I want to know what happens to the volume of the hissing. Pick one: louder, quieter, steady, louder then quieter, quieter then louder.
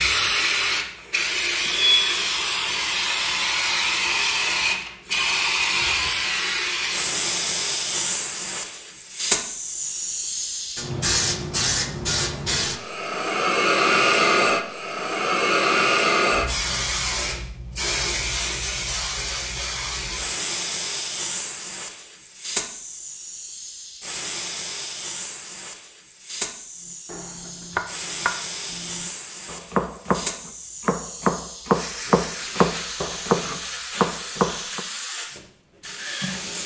quieter.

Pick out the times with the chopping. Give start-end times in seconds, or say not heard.
27.1-34.8.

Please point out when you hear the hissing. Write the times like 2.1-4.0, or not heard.
0.0-36.6.